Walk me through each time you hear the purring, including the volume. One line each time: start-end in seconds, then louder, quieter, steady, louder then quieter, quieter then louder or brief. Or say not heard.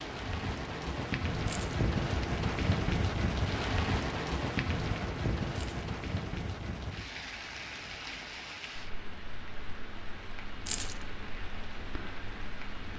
not heard.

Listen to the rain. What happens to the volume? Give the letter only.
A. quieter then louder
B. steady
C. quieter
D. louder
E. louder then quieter
C.